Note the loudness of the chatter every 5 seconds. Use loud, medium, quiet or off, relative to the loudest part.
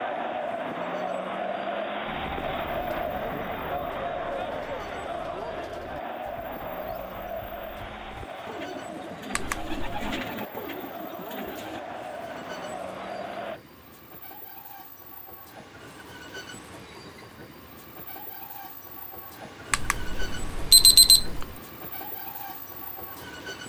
loud, medium, medium, off, off.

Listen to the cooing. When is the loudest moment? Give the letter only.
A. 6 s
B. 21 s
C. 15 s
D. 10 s
D.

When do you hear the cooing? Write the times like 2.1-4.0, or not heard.
2.0-11.8.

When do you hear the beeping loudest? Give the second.
21 s.